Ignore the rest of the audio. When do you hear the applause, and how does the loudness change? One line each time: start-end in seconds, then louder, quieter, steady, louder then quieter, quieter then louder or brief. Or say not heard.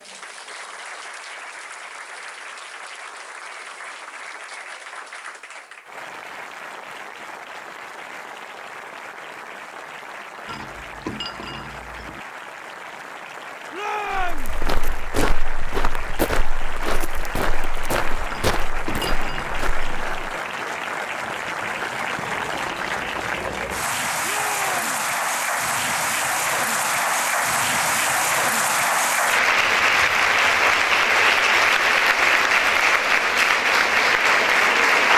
0.0-35.1 louder.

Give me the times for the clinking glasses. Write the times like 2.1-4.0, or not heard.
10.4-12.2, 18.2-20.1.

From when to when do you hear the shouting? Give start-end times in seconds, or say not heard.
13.7-14.6, 24.2-24.9.